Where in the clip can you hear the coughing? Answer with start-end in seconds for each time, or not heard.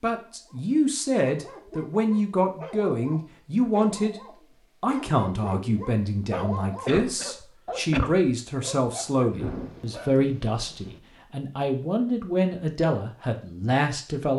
6.8-8.2.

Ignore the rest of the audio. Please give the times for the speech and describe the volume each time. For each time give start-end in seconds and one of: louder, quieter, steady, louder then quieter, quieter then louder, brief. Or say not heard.
0.0-14.3 steady.